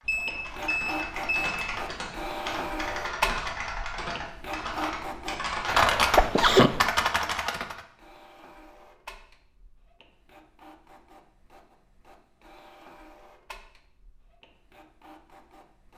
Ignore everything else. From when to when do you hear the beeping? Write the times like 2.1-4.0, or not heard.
0.1-1.6.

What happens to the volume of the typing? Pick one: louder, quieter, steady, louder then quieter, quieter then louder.
louder.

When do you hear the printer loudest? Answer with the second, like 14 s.
3 s.